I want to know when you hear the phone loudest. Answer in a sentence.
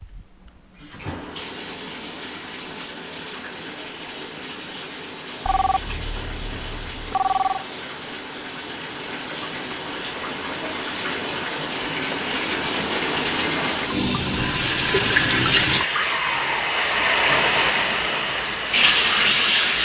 The loudest moment of the phone is at 7 seconds.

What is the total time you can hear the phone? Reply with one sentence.
You can hear the phone for 2 seconds altogether.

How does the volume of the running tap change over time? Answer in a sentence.
The volume of the running tap goes up.